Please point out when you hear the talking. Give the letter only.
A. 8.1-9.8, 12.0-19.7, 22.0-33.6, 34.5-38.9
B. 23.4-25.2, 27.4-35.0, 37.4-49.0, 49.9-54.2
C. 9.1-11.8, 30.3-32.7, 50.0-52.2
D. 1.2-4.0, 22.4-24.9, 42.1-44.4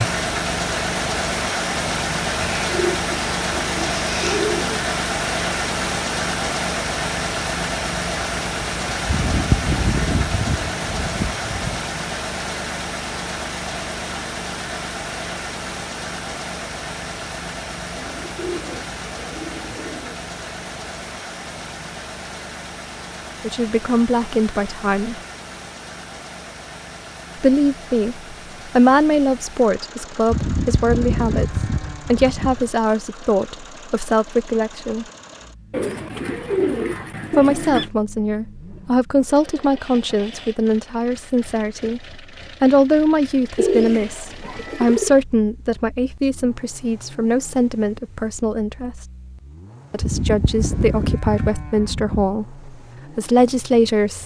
B.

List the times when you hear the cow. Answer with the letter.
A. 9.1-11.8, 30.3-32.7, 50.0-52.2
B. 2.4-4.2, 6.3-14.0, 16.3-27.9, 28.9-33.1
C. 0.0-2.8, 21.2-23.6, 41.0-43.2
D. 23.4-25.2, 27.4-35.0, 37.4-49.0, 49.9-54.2
A.